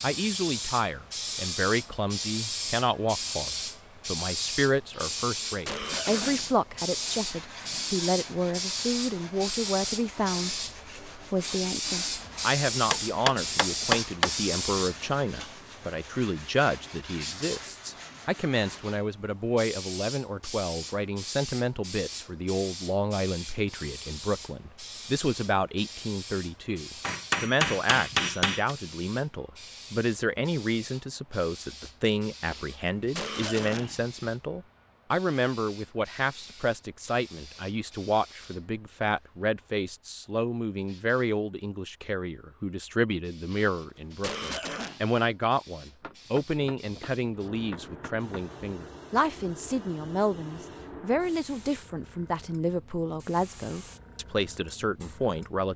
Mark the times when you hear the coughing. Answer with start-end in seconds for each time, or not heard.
4.9-6.7, 32.4-34.1, 43.5-45.0.